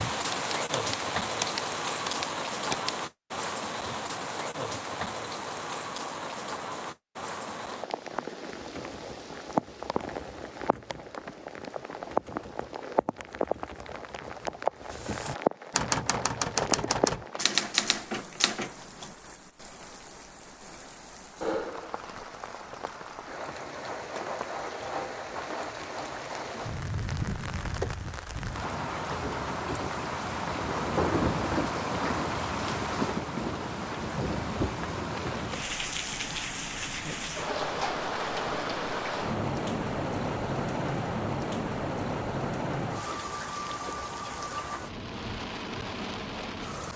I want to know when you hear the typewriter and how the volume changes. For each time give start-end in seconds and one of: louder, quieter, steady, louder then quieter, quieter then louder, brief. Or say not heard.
0.0-2.9 brief
8.6-19.1 louder.